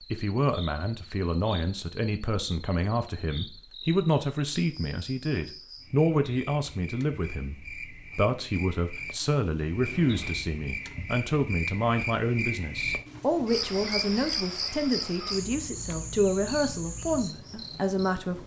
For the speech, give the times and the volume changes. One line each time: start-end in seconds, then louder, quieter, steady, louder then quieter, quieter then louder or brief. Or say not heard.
0.1-18.4 steady.